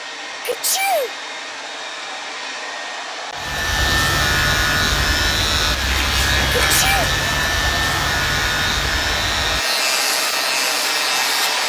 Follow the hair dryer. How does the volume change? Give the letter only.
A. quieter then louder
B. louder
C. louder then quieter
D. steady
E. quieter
B.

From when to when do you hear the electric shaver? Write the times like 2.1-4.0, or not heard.
3.4-11.6.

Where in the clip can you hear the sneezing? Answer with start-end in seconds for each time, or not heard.
0.5-1.1, 6.6-7.1.